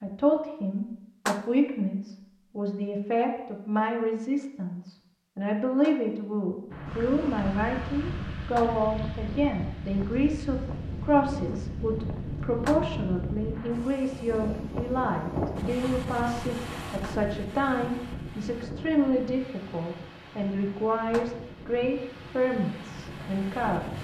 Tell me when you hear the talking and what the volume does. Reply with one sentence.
The talking can be heard from 0.0 to 23.9 s, at a steady volume.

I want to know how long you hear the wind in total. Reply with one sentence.
You can hear the wind for 17 seconds altogether.